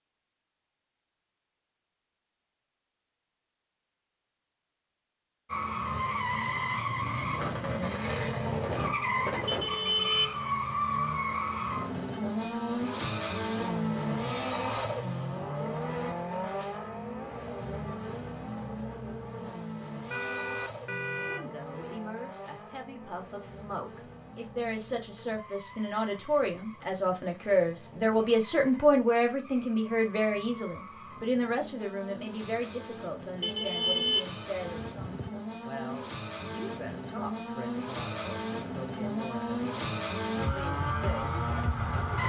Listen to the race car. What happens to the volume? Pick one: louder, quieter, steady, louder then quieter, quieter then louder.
quieter then louder.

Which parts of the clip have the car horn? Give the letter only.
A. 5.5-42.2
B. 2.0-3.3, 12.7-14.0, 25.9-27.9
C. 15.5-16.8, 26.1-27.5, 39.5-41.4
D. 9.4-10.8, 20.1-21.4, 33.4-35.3
D.